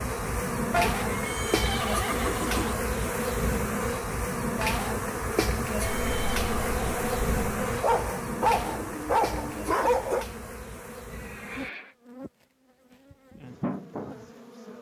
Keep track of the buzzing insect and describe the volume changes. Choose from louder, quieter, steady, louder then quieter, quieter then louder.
quieter.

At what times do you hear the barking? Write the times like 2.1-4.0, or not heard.
7.5-10.2.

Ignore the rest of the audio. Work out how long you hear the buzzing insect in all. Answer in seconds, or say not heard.
15 s.